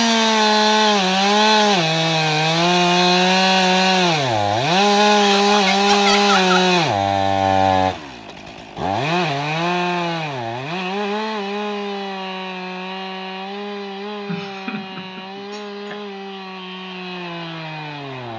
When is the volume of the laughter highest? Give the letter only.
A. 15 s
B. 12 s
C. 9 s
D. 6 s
D.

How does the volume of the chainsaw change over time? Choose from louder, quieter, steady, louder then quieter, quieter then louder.
quieter.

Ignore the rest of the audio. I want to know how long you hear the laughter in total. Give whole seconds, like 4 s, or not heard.
3 s.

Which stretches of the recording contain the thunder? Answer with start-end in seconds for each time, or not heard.
not heard.